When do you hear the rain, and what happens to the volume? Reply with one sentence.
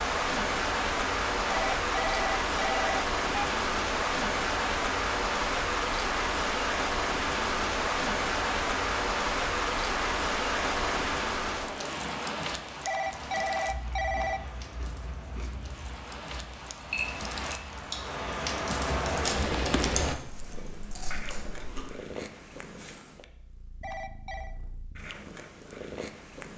The rain can be heard from 0.0 to 20.1 s, getting quieter then louder.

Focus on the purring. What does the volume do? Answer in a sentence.
The loudness of the purring goes down, then up.